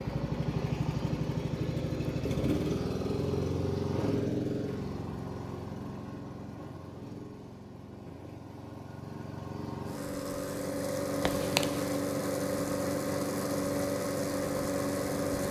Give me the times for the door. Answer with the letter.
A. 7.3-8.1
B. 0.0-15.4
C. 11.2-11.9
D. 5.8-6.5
C.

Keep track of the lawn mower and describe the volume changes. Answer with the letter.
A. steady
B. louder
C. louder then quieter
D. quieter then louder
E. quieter
D.